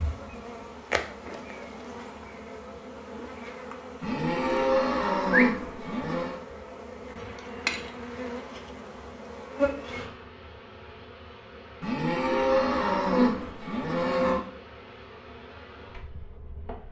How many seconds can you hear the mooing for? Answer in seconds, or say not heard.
5 s.